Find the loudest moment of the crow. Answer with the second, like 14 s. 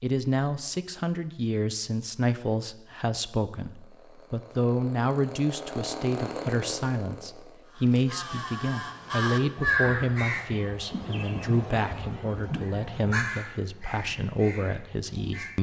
10 s.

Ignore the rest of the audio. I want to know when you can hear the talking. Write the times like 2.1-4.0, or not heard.
0.0-15.5.